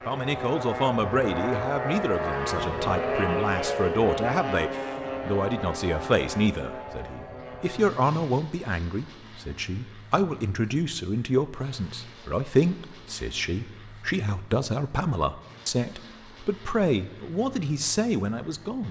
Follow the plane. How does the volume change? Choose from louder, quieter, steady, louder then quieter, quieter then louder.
quieter.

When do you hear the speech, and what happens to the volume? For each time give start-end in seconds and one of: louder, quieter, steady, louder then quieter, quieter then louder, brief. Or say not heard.
0.1-18.8 steady.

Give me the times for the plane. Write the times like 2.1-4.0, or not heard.
0.0-18.8.